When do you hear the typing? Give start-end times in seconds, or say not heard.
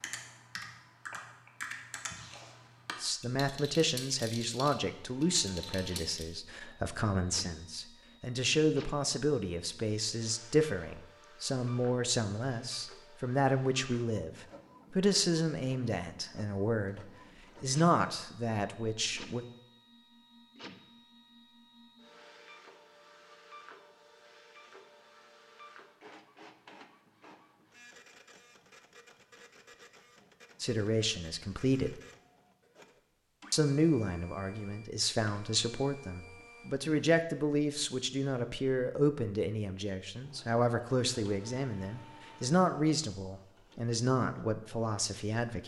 0.0-6.2.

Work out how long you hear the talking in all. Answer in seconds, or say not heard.
30 s.